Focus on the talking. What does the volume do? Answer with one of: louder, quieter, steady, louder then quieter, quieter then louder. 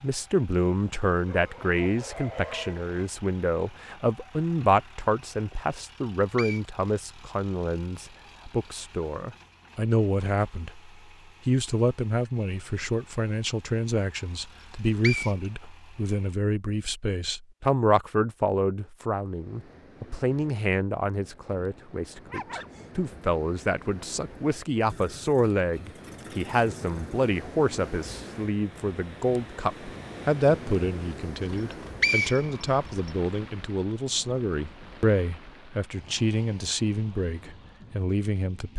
steady.